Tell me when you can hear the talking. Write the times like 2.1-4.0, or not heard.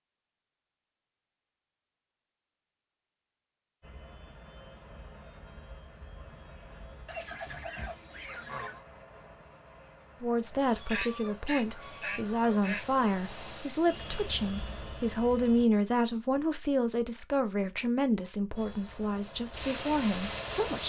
10.2-20.8.